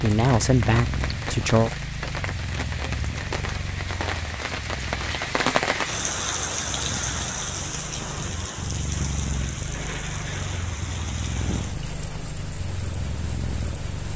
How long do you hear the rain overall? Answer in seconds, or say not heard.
14 s.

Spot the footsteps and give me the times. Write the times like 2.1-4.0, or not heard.
not heard.